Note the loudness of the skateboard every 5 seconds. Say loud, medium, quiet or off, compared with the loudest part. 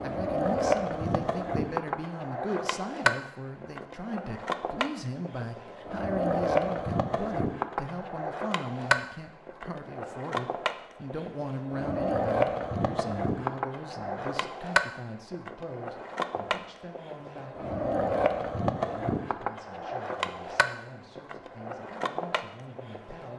loud, loud, loud, loud, medium.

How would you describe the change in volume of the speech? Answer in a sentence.
The volume of the speech goes down.